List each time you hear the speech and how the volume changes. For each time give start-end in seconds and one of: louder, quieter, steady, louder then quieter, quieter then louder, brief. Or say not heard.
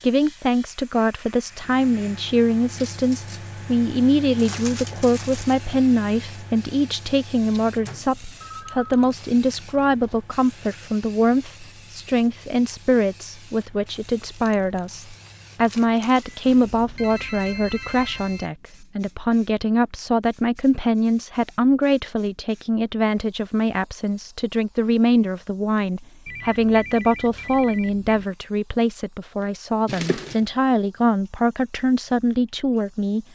0.0-33.2 steady.